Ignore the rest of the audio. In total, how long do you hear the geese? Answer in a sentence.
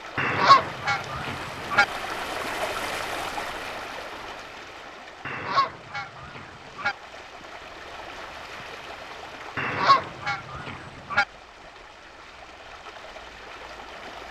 You can hear the geese for 5 seconds altogether.